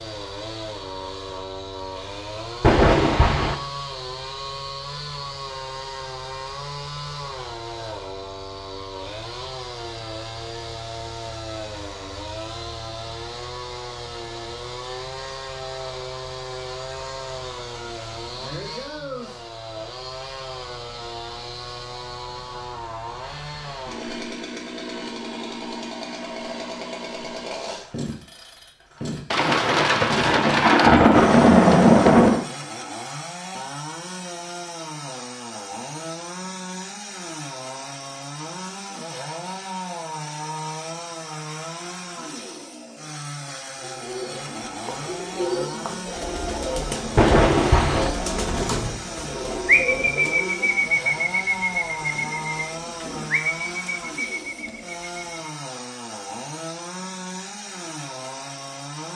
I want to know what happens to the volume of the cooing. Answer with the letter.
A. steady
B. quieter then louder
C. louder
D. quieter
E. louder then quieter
E.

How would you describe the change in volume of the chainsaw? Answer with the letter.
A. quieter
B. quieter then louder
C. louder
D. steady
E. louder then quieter
D.